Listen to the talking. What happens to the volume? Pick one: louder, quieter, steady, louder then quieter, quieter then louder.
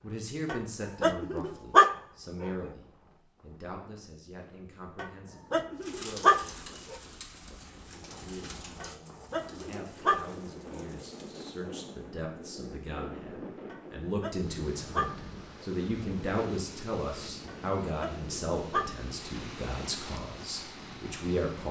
quieter then louder.